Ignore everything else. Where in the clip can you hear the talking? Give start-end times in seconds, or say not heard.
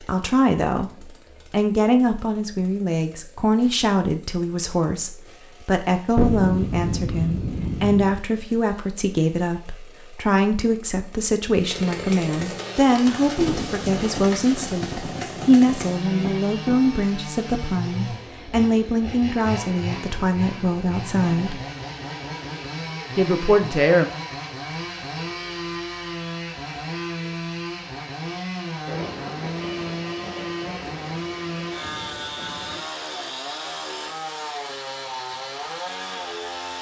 0.0-21.6, 23.1-24.1.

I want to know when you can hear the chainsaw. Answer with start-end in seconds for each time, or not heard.
0.0-36.7.